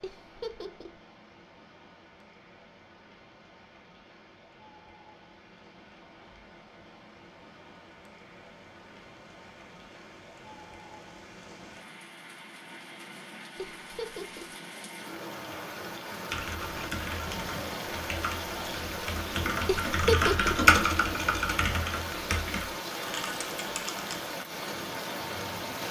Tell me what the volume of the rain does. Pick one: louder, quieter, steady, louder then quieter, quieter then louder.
louder.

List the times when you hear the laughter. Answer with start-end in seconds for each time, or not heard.
0.0-0.9, 13.8-14.5, 19.6-20.6.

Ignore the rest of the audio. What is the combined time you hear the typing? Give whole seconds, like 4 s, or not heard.
8 s.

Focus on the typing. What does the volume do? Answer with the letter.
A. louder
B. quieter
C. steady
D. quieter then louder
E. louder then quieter
E.